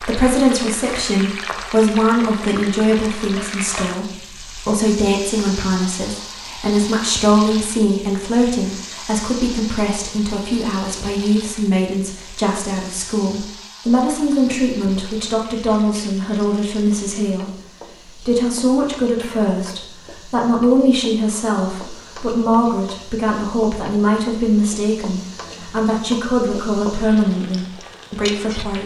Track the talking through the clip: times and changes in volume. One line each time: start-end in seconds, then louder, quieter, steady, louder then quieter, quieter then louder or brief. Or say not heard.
0.0-28.8 steady.